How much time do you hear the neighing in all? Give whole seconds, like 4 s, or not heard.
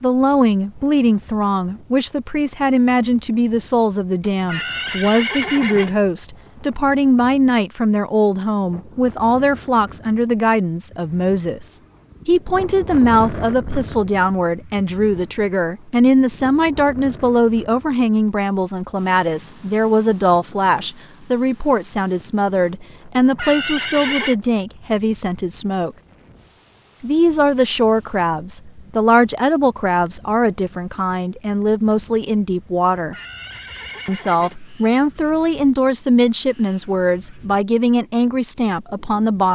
5 s.